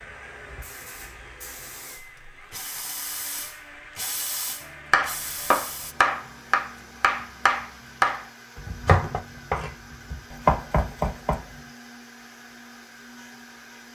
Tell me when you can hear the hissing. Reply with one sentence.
You can hear the hissing from 0.0 to 6.0 s.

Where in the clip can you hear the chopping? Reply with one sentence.
The chopping can be heard from 4.9 to 11.4 s.